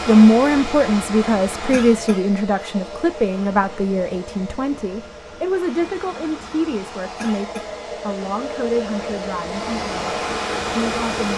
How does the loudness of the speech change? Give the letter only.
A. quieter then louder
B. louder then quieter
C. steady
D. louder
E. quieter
E.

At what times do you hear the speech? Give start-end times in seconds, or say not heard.
0.1-11.3.